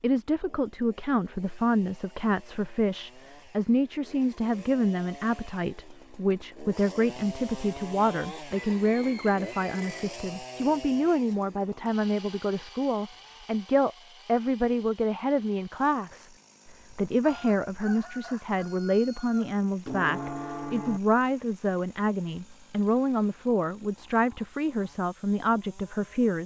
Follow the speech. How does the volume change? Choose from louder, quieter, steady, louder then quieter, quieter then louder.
steady.